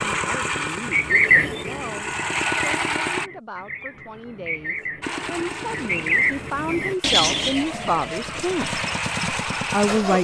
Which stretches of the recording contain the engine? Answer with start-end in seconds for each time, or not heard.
0.0-3.3, 5.0-10.1.